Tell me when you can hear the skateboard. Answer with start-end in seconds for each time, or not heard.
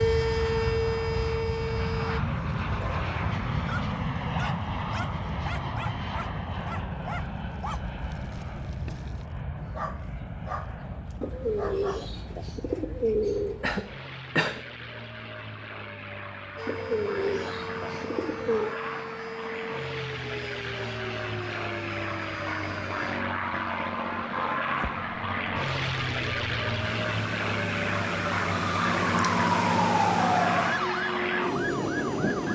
not heard.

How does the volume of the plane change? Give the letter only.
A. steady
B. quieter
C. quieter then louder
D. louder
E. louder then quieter
C.